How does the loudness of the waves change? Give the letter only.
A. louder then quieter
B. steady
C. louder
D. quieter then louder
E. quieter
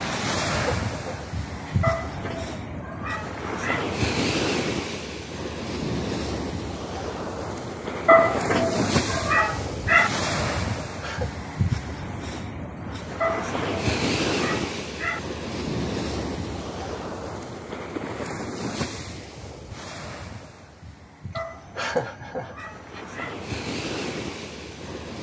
E.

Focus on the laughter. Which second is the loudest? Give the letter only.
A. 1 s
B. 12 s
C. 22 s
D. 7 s
C.